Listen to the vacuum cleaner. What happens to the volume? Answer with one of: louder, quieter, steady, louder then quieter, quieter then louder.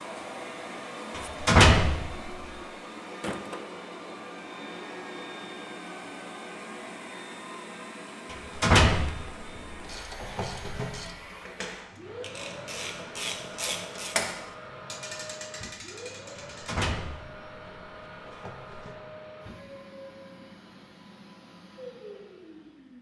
quieter.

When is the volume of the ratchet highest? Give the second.
14 s.